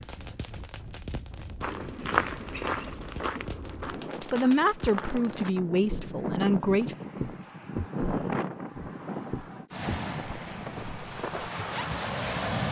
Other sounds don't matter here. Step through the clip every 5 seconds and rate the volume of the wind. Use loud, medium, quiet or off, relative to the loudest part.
quiet, loud, loud.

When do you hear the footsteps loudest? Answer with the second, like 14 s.
2 s.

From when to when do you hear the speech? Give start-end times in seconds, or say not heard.
4.2-7.0.